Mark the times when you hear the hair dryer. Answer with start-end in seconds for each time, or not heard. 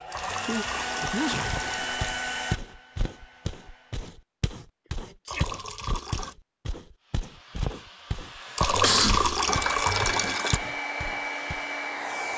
0.0-4.1, 7.0-12.3.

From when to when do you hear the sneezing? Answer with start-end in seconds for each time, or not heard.
0.1-1.6, 5.0-5.5, 8.7-9.3.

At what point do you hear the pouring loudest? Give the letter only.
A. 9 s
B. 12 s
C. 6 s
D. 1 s
A.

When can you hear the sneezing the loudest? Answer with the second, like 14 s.
9 s.